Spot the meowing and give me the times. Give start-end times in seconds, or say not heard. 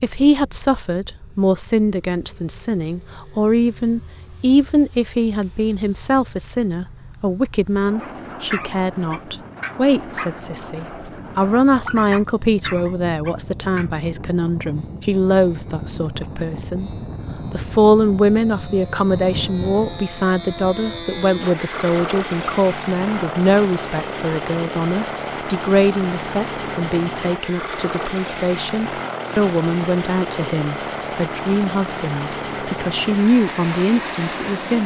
not heard.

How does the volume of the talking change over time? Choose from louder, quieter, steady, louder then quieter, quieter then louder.
steady.